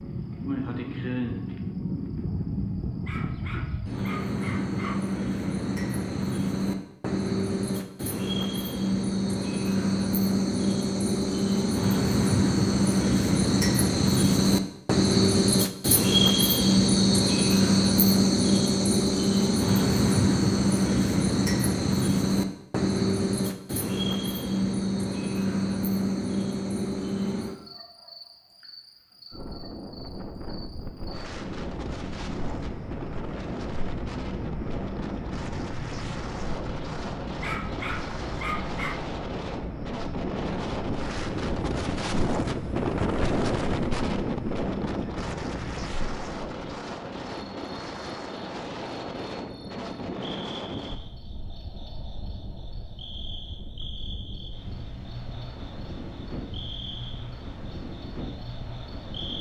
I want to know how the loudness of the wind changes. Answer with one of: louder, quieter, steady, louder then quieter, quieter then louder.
louder then quieter.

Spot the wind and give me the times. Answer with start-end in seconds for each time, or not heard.
29.3-59.3.